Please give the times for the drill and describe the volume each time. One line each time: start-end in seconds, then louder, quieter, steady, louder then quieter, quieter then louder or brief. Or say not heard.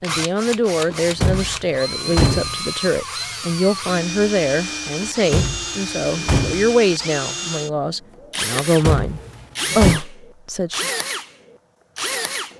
0.0-12.5 steady.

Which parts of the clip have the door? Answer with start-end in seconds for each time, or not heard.
0.9-2.6, 5.0-6.7, 8.8-10.0.